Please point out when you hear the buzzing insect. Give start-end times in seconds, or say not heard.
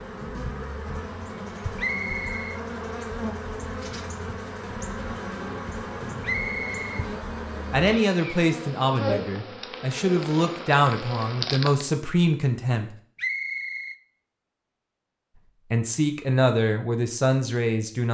0.0-11.9.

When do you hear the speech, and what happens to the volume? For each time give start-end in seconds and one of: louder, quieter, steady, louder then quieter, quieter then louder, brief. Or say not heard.
7.7-12.9 quieter then louder
15.7-18.0 brief.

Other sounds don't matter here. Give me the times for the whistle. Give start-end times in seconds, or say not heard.
1.8-2.6, 6.2-7.0, 13.2-13.9.